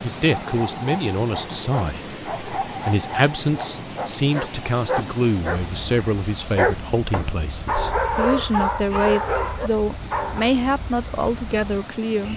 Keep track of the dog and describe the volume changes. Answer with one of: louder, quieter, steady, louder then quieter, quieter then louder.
louder.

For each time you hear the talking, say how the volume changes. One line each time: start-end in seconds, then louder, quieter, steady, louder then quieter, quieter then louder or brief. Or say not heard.
0.0-12.3 steady.